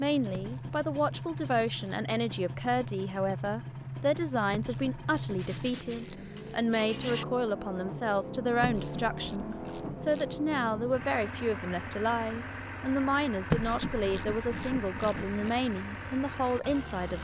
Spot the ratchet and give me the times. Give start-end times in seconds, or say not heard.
0.3-2.1, 4.5-6.4, 8.6-10.4, 13.5-15.5.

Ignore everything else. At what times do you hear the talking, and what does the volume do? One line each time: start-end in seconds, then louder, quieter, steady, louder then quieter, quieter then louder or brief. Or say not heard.
0.0-17.1 steady.